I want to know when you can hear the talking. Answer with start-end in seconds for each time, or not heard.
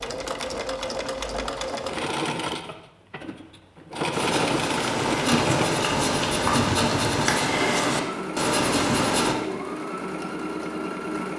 not heard.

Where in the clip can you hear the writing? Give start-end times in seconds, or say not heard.
4.1-9.3.